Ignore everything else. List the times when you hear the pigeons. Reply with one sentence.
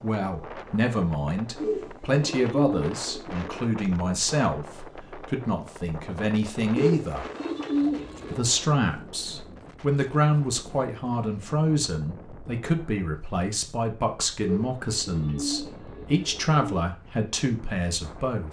You can hear the pigeons from 1.6 to 3.6 s, from 6.8 to 8.5 s and from 14.4 to 16.6 s.